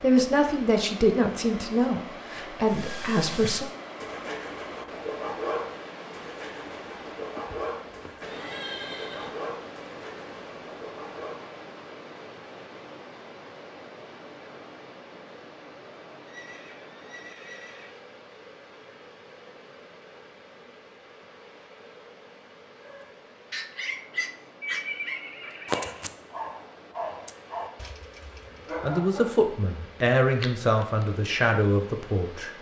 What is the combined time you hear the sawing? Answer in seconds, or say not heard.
9 s.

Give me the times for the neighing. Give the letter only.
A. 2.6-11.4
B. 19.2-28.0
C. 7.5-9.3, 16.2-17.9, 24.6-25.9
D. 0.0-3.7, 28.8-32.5
C.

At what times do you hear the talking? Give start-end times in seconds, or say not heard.
0.0-3.7, 28.8-32.5.